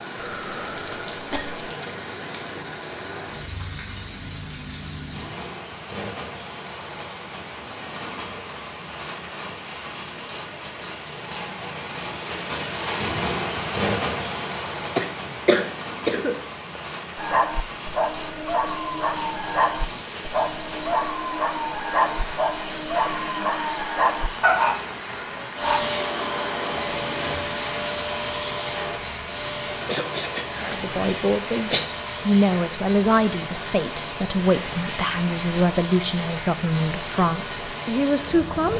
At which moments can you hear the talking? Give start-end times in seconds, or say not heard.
30.6-38.7.